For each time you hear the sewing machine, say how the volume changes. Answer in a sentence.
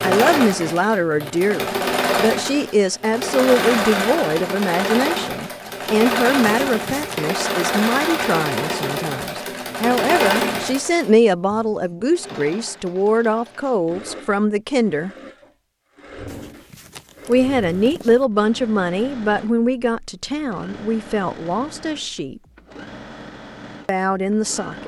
The sewing machine can be heard from 0.0 to 24.8 s, getting quieter.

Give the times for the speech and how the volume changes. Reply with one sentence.
The speech can be heard from 0.0 to 15.1 s, at a steady volume; from 17.2 to 22.4 s, getting quieter; and briefly from 23.9 to 24.8 s.